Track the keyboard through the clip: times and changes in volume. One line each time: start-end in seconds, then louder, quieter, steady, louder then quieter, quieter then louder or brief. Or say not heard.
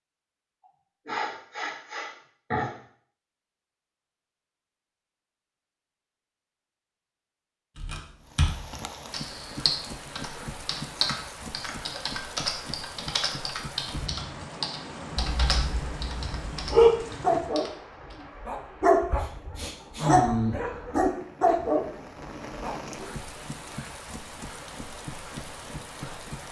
7.8-18.2 quieter.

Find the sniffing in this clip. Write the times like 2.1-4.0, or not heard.
1.1-2.7, 10.9-11.8, 19.1-20.2.